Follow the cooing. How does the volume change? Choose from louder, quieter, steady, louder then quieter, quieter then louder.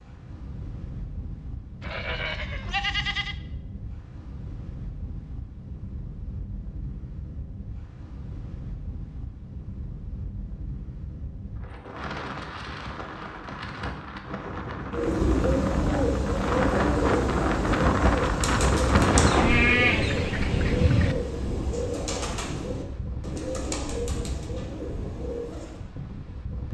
quieter.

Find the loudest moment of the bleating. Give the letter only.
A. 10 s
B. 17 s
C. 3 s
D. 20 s
D.